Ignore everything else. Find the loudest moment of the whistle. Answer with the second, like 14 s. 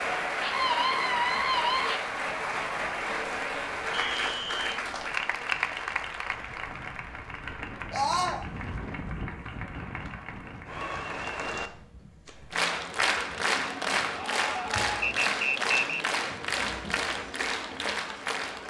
16 s.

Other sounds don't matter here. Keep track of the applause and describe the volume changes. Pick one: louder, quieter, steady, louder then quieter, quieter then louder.
quieter then louder.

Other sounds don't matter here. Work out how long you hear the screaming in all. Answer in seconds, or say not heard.
3 s.